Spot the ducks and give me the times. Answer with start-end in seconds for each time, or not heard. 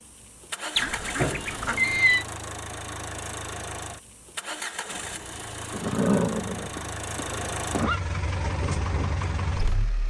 0.8-1.9.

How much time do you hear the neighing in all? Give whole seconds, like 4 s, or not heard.
4 s.